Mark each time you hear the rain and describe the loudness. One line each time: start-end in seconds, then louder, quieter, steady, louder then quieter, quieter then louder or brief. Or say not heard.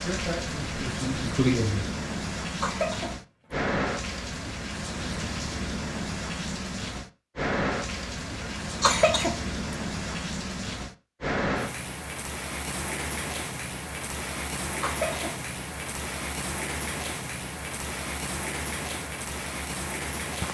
0.0-20.4 steady.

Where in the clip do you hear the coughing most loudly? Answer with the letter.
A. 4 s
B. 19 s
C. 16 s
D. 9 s
D.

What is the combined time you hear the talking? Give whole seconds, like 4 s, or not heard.
2 s.